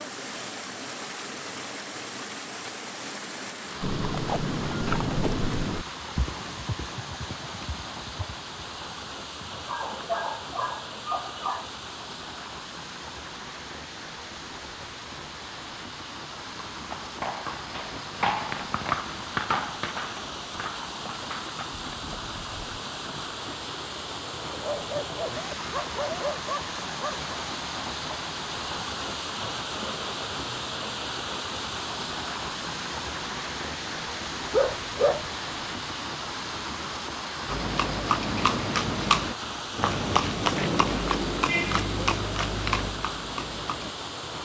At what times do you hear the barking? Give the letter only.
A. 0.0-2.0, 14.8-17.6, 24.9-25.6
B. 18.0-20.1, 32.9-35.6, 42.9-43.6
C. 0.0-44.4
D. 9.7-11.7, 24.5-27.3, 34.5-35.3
D.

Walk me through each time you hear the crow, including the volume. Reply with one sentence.
You can't hear the crow here.